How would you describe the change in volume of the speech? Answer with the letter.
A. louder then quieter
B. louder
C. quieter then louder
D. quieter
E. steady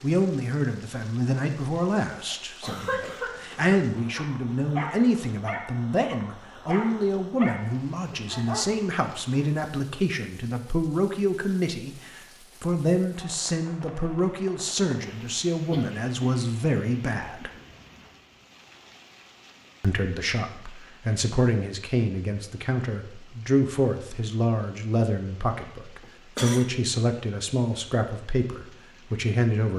E.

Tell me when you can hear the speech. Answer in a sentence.
The speech can be heard from 0.0 to 17.5 s and from 19.8 to 29.7 s.